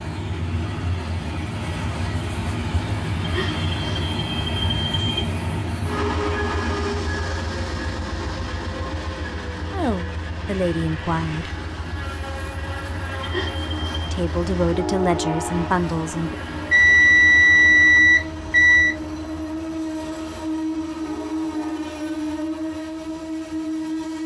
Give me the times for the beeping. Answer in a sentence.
The beeping can be heard from 3.2 to 5.2 s, from 13.2 to 14.2 s and from 16.7 to 18.9 s.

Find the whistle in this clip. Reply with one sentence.
The whistle can't be heard in this clip.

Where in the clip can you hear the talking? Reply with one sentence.
The talking can be heard from 9.7 to 11.5 s and from 14.1 to 16.4 s.